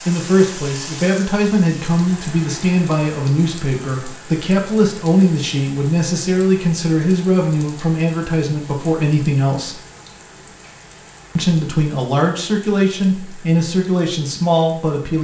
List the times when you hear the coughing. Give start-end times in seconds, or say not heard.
not heard.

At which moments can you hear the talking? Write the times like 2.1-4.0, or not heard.
0.1-9.8, 11.3-15.1.